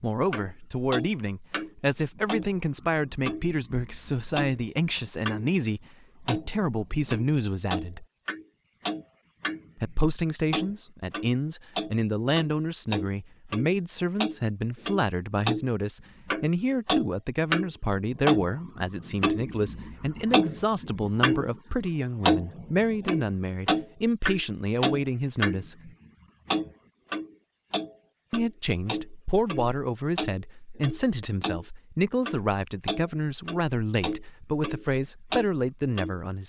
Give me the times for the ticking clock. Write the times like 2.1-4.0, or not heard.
0.3-5.5, 6.2-9.9, 10.5-31.6, 32.2-36.1.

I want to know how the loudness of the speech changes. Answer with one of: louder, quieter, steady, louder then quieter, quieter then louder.
steady.